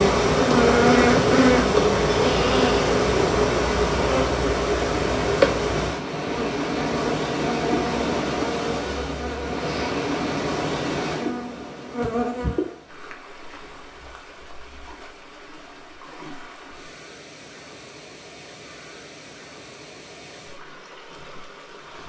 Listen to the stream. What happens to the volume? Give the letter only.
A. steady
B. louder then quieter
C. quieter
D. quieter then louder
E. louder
C.